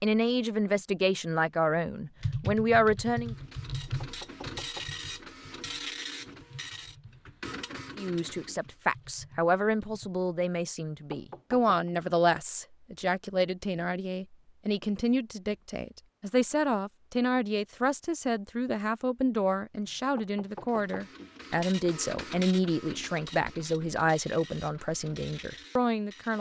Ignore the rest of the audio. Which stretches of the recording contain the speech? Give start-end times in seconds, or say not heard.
0.0-3.4, 8.0-26.3.